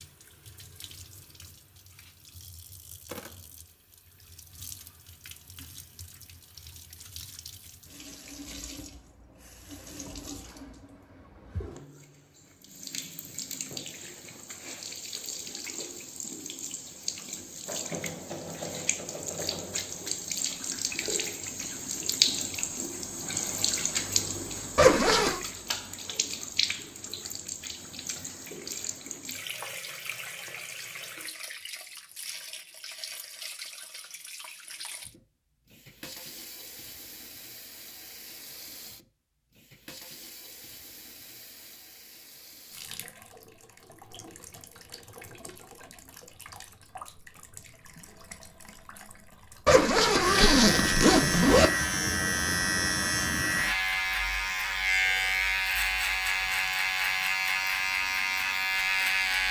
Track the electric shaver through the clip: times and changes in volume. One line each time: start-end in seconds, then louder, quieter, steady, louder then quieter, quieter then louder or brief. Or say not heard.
50.2-59.4 steady.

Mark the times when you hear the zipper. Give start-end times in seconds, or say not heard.
24.8-25.4, 49.6-51.7.